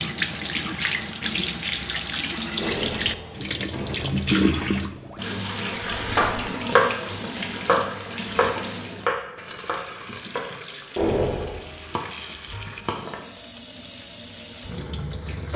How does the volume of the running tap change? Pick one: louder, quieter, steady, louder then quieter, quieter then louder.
quieter.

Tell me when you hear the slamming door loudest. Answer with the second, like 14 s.
11 s.